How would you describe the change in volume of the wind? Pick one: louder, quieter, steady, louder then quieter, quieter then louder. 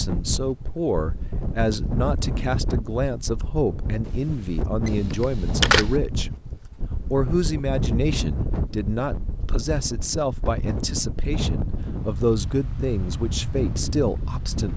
steady.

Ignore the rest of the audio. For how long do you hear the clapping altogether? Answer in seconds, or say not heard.
not heard.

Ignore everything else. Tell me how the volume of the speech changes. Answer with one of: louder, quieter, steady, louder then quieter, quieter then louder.
steady.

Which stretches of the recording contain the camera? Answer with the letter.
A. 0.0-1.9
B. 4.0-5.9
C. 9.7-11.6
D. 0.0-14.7
B.